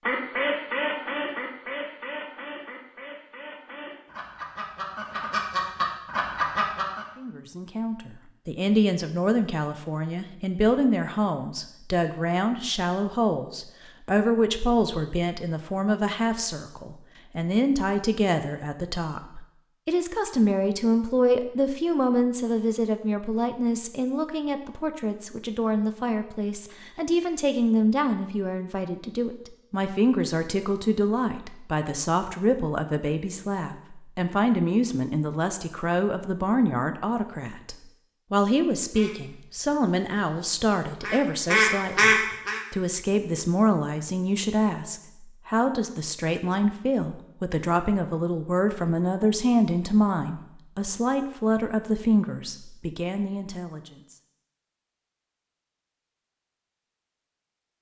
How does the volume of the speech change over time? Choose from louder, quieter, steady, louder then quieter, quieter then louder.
steady.